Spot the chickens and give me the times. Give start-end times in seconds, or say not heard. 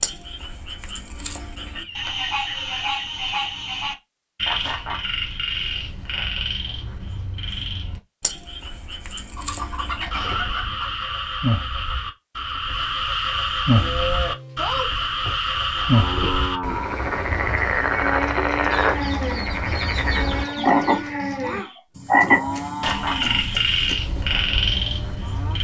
1.7-3.9, 9.3-11.1, 18.7-21.1.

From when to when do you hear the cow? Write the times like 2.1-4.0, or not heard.
13.7-25.5.